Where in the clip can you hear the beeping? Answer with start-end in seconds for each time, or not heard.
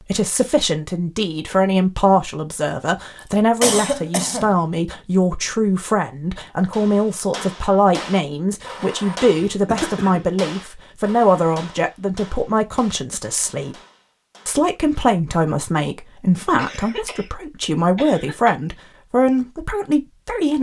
not heard.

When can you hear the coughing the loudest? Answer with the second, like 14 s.
4 s.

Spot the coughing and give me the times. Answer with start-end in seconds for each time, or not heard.
3.6-4.5, 9.4-10.3, 16.6-17.4, 17.9-18.6.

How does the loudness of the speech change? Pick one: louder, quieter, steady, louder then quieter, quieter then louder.
steady.